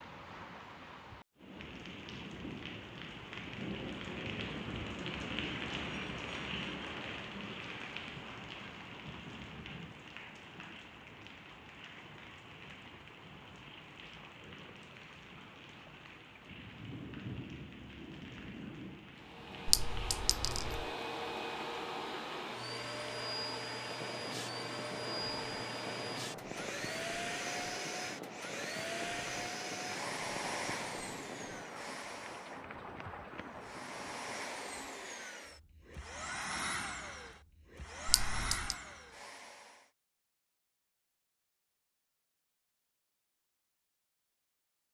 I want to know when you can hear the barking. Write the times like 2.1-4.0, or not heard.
not heard.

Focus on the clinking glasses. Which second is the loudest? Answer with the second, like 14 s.
20 s.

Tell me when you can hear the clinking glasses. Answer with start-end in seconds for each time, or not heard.
19.6-20.9, 38.0-38.8.